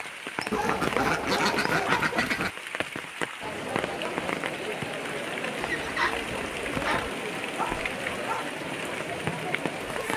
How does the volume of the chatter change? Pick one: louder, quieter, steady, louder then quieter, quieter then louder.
steady.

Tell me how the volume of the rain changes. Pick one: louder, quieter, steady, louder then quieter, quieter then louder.
steady.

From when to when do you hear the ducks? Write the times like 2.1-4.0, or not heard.
0.5-2.5, 5.6-7.1.